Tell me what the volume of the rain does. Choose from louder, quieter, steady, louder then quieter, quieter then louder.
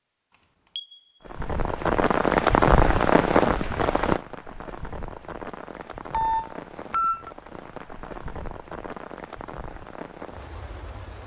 quieter.